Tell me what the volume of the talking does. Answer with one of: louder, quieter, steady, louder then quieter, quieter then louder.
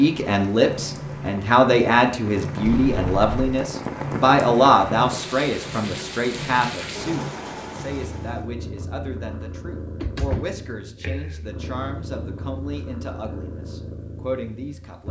quieter.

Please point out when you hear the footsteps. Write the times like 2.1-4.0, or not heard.
not heard.